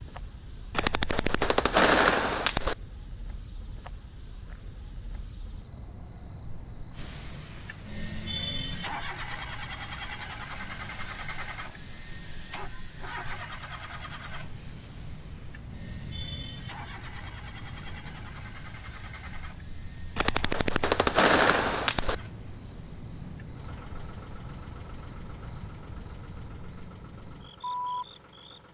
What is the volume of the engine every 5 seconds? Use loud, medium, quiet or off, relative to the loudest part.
off, loud, loud, medium, quiet, quiet.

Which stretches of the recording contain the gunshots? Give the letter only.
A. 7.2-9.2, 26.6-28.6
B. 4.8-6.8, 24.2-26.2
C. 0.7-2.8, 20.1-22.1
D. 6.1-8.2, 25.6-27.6
C.